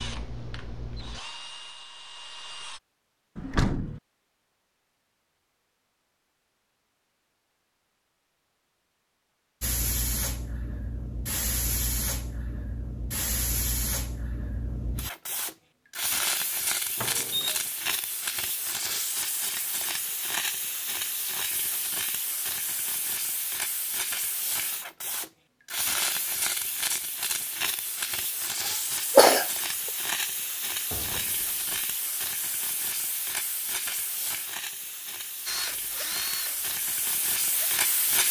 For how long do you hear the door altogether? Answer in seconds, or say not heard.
2 s.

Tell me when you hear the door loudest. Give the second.
4 s.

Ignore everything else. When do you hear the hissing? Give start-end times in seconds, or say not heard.
9.6-38.2.